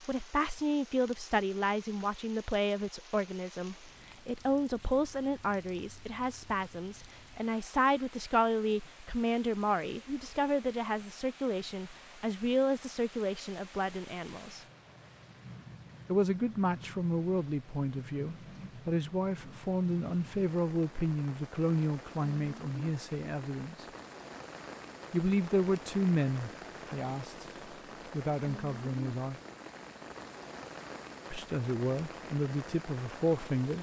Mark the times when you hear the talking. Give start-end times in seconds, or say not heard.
0.1-14.7, 16.1-23.9, 25.1-27.4, 28.1-29.4, 31.3-33.7.